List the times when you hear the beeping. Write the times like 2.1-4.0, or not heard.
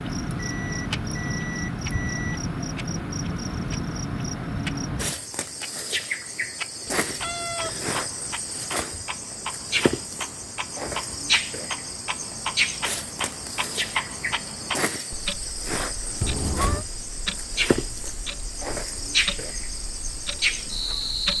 0.4-2.4.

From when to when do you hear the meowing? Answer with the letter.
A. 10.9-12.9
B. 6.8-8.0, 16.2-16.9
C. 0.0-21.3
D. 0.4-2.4
B.